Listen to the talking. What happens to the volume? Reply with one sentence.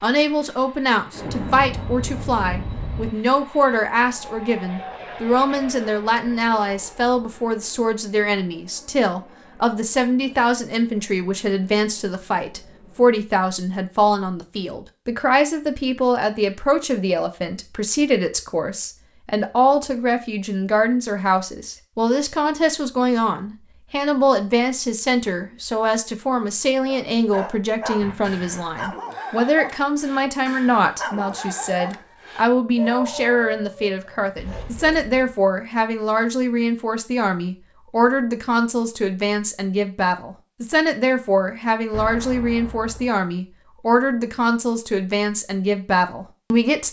The loudness of the talking stays about the same.